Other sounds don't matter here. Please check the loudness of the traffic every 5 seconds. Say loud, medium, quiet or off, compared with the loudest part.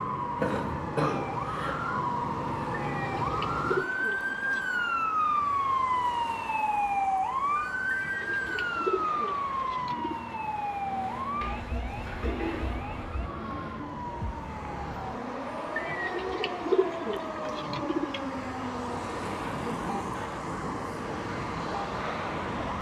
medium, medium, medium, loud, loud.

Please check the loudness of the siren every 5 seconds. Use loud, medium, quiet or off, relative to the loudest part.
loud, loud, medium, medium, medium.